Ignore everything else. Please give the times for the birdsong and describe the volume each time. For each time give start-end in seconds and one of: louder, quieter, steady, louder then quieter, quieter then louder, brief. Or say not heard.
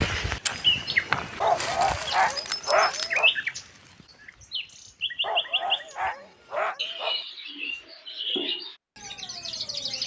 0.0-10.0 quieter.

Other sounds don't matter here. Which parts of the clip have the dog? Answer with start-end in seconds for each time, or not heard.
1.4-3.3, 5.2-7.2.